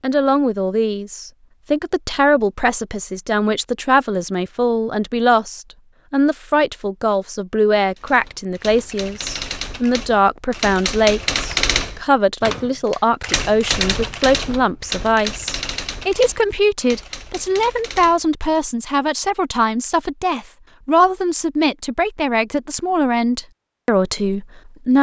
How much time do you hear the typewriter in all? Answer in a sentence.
You can hear the typewriter for 11 seconds altogether.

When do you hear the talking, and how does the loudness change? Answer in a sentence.
You can hear the talking from 0.0 to 24.9 s, at a steady volume.